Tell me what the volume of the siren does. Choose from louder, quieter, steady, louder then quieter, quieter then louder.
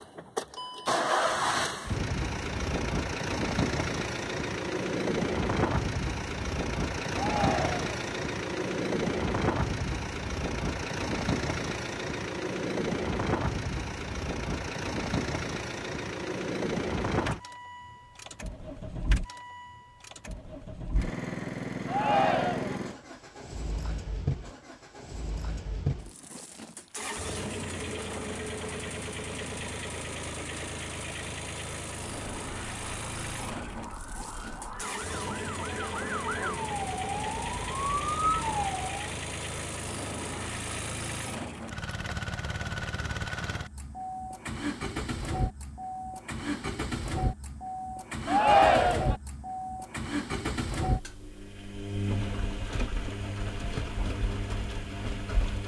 louder.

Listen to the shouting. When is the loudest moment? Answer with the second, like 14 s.
49 s.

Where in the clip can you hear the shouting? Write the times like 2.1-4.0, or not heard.
7.1-7.8, 21.9-22.8, 48.2-49.1.